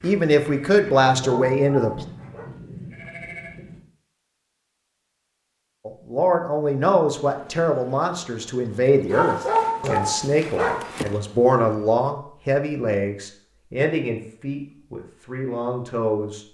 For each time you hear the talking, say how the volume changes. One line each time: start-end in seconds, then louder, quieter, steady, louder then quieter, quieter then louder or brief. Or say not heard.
0.0-2.0 brief
5.8-16.4 quieter.